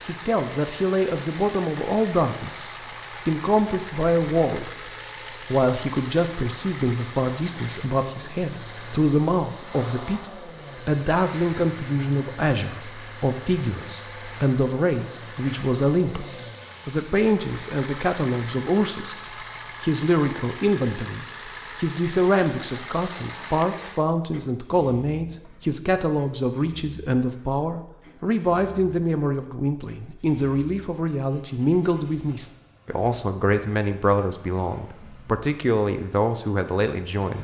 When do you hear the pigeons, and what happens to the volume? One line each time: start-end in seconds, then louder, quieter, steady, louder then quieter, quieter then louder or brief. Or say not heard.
not heard.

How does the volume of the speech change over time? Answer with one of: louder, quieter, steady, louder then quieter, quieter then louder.
steady.